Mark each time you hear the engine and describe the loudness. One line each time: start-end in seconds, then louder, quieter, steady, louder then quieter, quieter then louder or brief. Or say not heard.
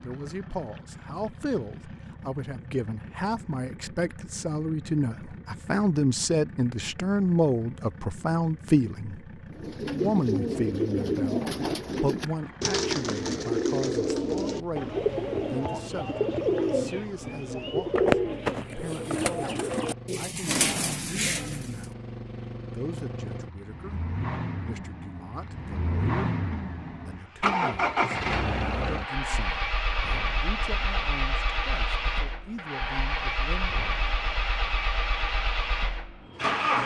0.0-36.8 louder.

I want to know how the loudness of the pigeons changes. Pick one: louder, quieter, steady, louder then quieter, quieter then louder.
steady.